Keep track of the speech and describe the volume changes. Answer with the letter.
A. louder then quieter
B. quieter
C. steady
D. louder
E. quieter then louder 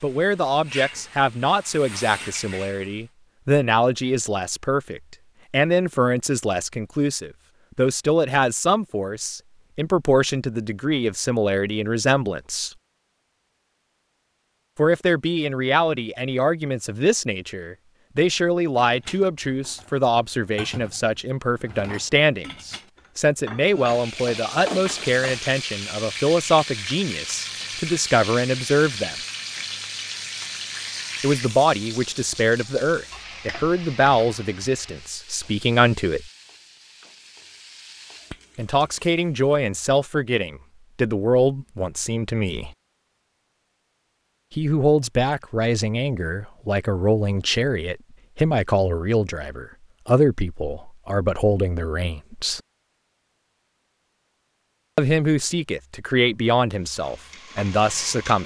C.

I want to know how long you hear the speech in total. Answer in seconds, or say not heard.
48 s.